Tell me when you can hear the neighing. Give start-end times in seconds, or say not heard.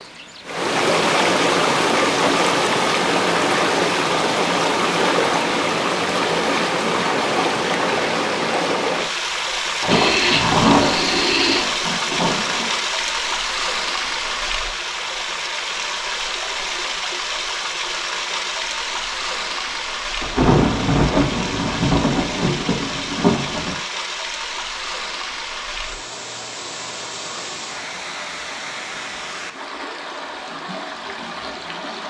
9.9-11.7.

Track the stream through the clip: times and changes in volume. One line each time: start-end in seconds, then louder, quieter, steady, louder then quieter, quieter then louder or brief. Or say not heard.
0.0-32.0 quieter.